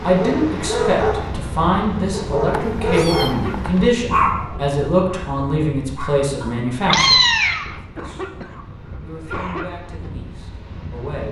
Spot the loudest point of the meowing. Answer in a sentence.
The loudest moment of the meowing is at 7 seconds.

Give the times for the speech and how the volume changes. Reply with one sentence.
The speech can be heard from 0.0 to 11.2 s, getting quieter.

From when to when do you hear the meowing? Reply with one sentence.
The meowing can be heard from 2.5 to 3.7 s and from 6.4 to 7.8 s.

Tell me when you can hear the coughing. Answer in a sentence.
You can hear the coughing from 3.2 to 3.8 s and from 7.8 to 9.7 s.